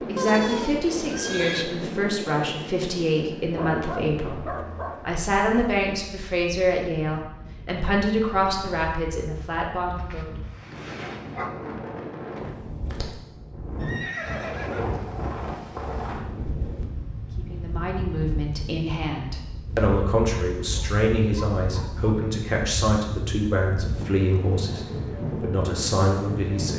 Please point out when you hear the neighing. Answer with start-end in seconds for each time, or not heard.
0.1-1.6, 13.8-15.2.